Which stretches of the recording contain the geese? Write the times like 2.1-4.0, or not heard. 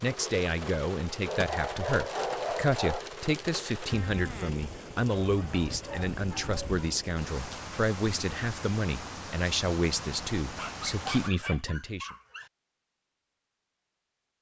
not heard.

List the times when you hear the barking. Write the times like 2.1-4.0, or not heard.
1.2-3.0, 5.0-6.8, 10.6-12.5.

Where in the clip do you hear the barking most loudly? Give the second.
2 s.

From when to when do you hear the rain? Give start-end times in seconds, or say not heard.
0.0-11.3.